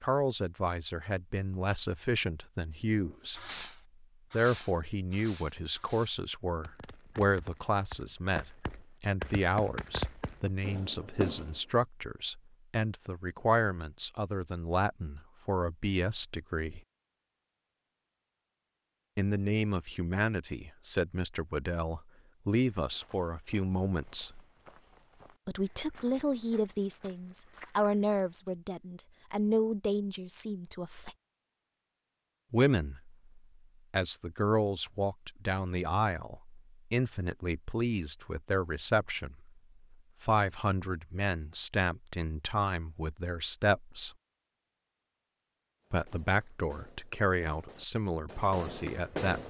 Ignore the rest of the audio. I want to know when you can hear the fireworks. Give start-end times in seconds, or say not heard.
3.0-11.6, 45.8-49.4.